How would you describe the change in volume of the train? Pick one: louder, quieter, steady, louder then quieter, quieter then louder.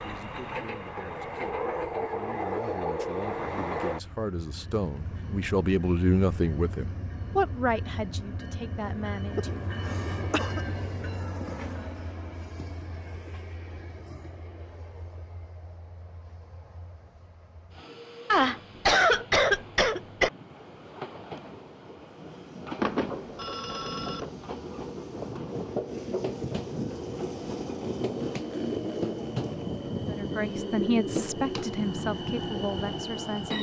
quieter then louder.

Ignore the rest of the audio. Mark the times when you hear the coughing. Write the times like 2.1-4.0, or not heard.
9.3-10.6, 18.3-20.3.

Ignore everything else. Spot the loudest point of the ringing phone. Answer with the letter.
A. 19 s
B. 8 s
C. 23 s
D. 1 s
C.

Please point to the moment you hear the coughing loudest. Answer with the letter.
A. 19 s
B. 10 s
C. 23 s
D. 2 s
A.